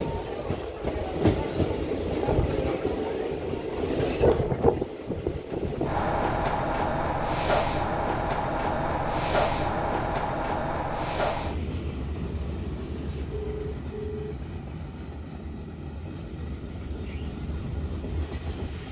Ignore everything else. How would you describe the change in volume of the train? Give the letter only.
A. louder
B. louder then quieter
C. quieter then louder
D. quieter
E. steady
D.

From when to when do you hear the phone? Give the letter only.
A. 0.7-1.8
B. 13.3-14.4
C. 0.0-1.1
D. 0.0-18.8
B.